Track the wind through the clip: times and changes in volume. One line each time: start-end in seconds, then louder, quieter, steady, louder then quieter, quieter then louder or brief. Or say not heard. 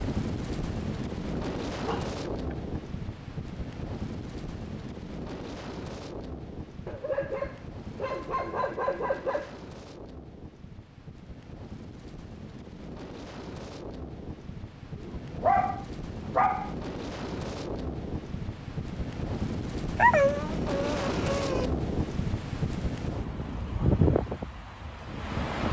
0.0-25.6 quieter then louder.